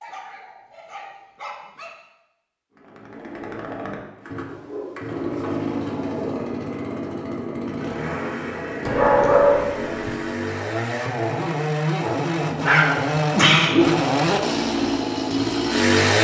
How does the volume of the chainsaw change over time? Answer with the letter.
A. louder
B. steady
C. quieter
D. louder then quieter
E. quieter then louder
A.